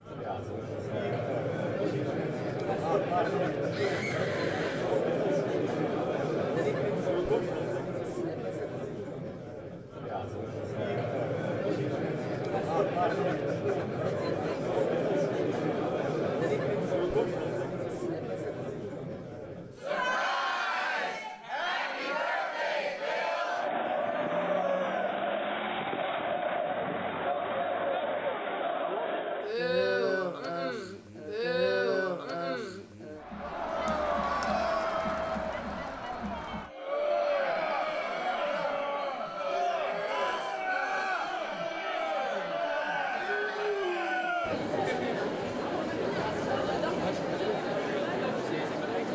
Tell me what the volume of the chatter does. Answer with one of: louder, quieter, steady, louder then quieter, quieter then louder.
steady.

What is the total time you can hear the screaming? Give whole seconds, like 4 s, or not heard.
3 s.